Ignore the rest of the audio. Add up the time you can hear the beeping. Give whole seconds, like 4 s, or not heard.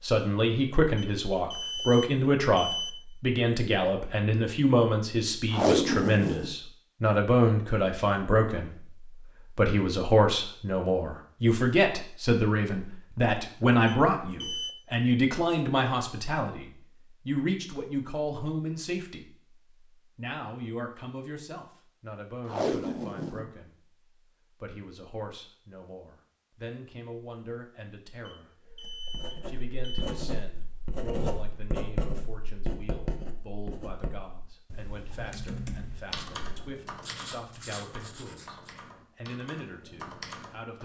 5 s.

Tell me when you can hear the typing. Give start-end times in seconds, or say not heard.
35.1-40.8.